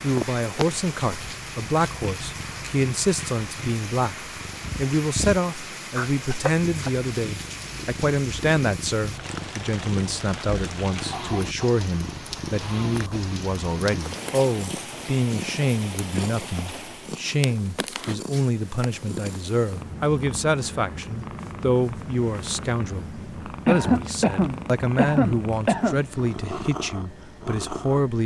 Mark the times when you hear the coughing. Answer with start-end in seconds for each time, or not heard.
6.0-6.9, 11.1-11.8, 23.6-26.1.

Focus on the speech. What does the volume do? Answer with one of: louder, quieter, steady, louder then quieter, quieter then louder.
steady.